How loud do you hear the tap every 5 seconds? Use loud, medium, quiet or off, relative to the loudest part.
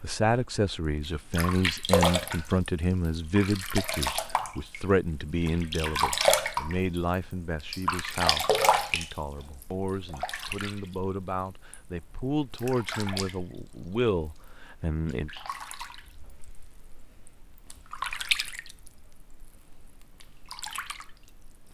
loud, loud, quiet, medium, quiet.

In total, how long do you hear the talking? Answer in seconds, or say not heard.
15 s.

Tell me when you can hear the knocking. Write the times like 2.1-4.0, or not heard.
not heard.